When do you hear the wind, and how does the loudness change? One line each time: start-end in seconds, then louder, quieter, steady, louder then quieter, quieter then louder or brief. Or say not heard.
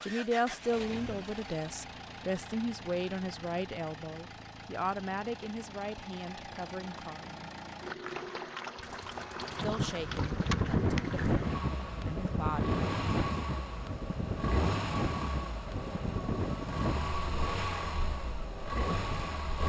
9.5-19.5 quieter.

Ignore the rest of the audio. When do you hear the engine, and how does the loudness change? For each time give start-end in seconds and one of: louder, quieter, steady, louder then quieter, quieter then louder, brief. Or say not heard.
0.0-19.6 louder.